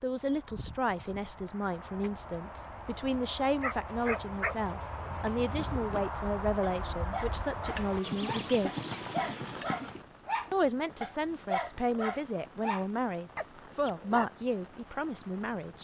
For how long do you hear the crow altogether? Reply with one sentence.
The crow can't be heard in this clip.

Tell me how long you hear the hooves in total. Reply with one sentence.
The hooves can be heard for 10 seconds in total.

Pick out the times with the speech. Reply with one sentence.
You can hear the speech from 0.0 to 8.8 s and from 10.5 to 15.7 s.